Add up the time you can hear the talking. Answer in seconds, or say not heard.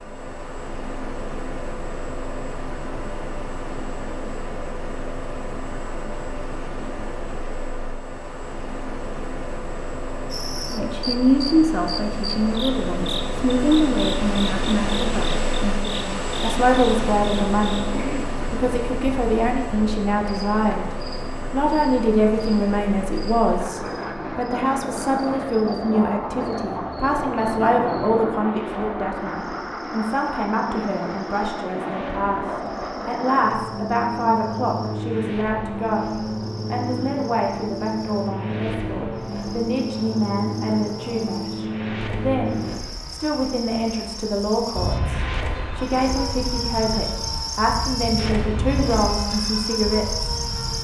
39 s.